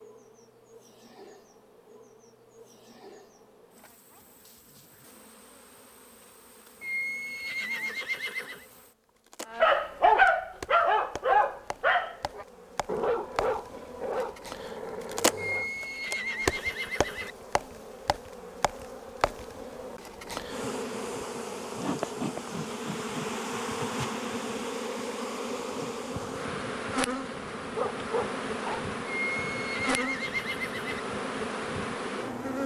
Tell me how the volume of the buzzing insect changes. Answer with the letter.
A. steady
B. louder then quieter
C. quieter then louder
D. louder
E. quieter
D.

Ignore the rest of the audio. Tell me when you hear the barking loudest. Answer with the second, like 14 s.
10 s.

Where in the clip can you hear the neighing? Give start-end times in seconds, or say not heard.
6.8-8.7, 15.3-17.4, 29.1-31.0.